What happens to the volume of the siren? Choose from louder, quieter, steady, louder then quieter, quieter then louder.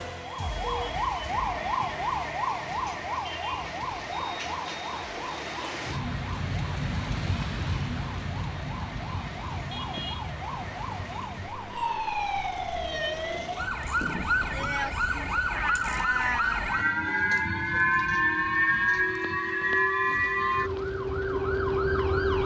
quieter then louder.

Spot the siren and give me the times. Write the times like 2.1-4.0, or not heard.
0.0-22.4.